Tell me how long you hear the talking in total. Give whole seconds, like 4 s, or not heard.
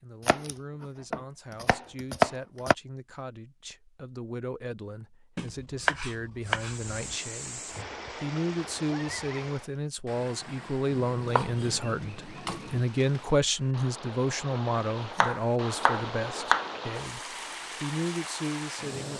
19 s.